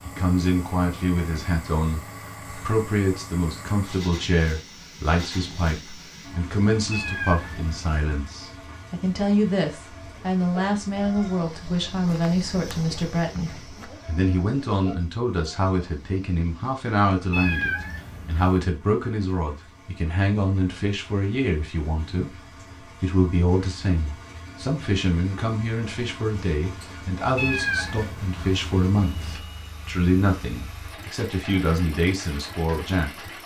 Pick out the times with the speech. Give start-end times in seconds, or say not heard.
0.1-33.4.